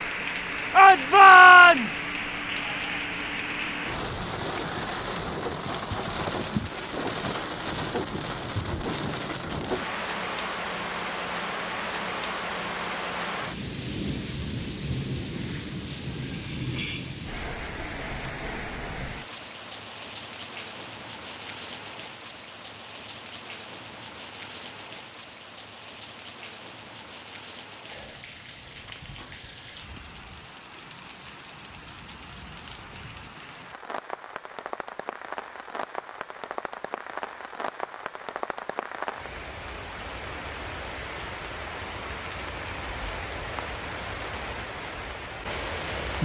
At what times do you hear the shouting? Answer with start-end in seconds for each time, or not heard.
0.8-2.0.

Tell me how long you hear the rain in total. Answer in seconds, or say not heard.
46 s.